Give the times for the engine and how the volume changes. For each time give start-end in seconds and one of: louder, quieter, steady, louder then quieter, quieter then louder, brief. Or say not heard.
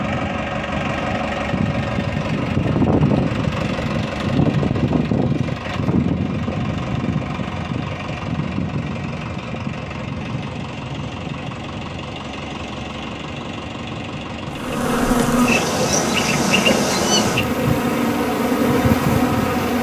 0.0-19.7 quieter.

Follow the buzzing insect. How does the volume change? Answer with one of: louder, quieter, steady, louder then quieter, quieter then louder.
steady.